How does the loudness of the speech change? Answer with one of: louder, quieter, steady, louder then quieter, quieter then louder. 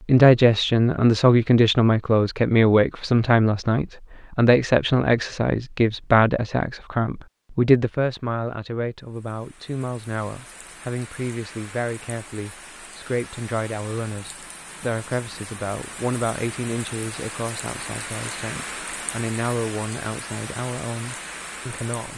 quieter.